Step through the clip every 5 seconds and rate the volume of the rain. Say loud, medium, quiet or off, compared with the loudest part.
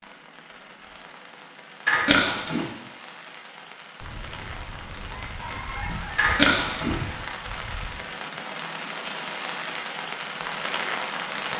quiet, medium, loud.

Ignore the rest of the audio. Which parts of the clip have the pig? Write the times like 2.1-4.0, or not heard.
1.9-2.7, 6.2-7.0.